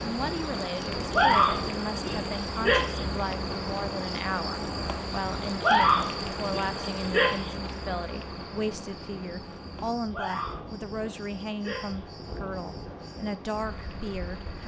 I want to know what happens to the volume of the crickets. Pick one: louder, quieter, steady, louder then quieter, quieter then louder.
quieter.